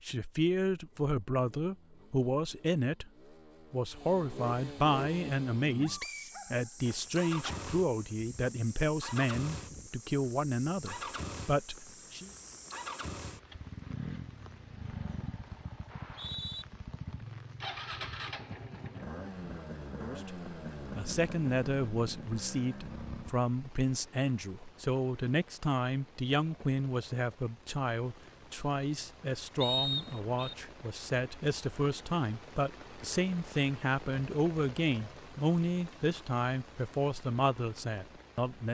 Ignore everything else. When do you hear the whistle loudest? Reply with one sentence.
The loudest moment of the whistle is at 30 seconds.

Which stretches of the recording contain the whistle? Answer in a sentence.
The whistle can be heard from 6.0 to 6.4 s, from 15.9 to 16.6 s and from 29.6 to 30.6 s.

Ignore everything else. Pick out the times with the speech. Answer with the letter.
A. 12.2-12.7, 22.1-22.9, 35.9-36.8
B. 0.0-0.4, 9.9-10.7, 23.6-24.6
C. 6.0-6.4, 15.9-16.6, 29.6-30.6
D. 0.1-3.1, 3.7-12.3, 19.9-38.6
D.